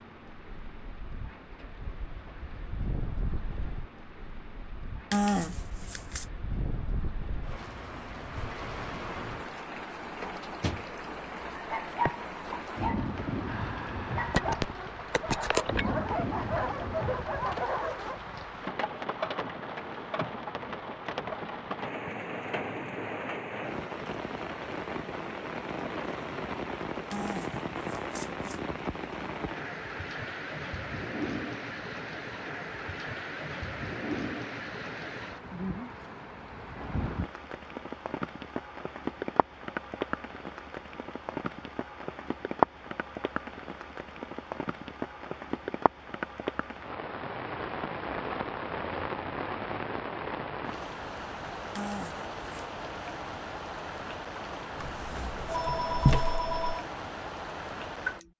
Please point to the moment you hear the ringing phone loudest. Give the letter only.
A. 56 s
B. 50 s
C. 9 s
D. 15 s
A.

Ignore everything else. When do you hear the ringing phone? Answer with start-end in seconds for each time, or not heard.
14.3-15.8, 54.8-56.8.